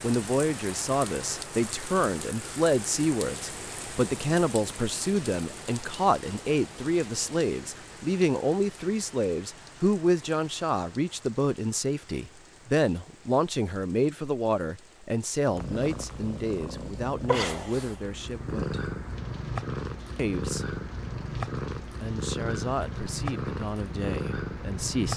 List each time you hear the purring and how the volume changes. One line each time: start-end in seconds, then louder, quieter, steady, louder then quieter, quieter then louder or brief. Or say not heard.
15.4-25.1 steady.